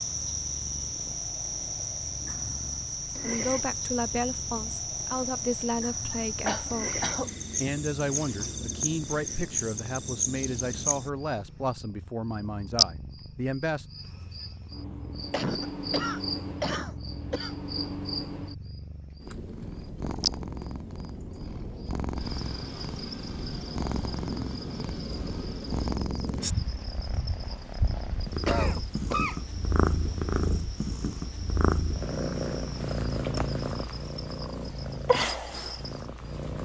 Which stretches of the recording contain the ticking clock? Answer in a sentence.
The ticking clock can't be heard in this clip.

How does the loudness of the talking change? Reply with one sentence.
The loudness of the talking stays about the same.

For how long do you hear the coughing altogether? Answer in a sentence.
The coughing can be heard for 5 seconds in total.